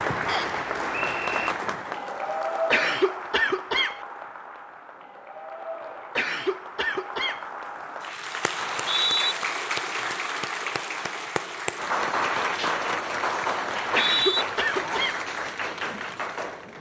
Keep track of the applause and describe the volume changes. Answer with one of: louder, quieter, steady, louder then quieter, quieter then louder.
quieter then louder.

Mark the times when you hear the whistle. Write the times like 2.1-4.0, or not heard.
0.2-1.5, 8.6-9.3, 13.7-14.4.